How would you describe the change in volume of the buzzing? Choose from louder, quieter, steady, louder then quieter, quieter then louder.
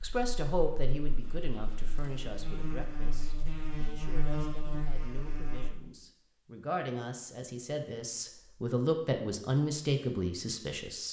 louder.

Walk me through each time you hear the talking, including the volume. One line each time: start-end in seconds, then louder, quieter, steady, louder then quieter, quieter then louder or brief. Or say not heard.
0.0-11.0 quieter then louder.